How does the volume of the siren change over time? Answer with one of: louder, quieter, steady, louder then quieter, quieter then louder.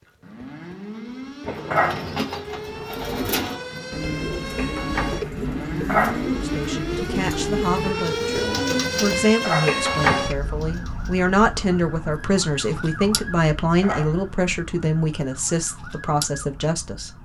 louder then quieter.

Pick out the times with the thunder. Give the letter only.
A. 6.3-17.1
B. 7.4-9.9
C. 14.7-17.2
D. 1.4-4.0
D.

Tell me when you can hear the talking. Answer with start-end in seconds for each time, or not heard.
6.3-17.1.